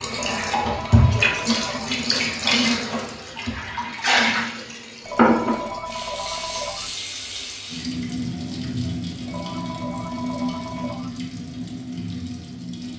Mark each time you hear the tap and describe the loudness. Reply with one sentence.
You can hear the tap from 0.0 to 12.9 s, getting quieter.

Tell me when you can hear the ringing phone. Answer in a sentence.
The ringing phone can be heard from 0.1 to 2.0 s, from 5.0 to 7.0 s and from 9.2 to 11.2 s.